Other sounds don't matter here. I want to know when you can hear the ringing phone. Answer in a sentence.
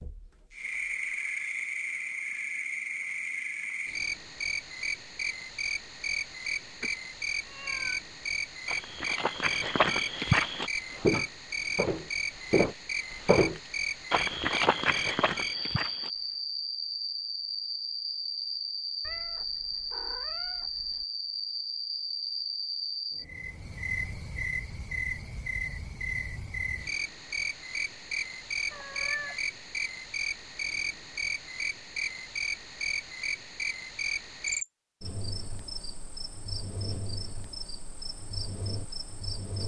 You can't hear the ringing phone here.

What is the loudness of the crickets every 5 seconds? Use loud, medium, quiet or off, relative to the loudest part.
loud, loud, loud, loud, loud, loud, loud, medium.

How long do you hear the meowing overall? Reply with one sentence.
The meowing can be heard for 4 seconds in total.